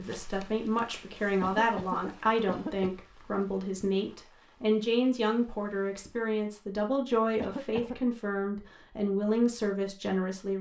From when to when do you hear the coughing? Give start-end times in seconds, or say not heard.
1.4-2.9, 7.3-8.1.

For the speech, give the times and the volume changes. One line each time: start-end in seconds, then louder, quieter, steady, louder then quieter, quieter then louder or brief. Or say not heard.
0.0-10.5 steady.